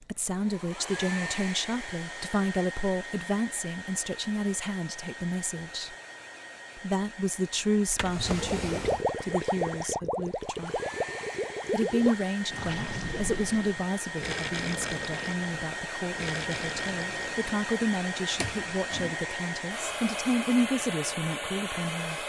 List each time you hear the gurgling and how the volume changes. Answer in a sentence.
The gurgling can be heard from 8.2 to 17.6 s, getting quieter.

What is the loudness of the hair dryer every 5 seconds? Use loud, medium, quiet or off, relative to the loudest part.
medium, medium, medium, loud, loud.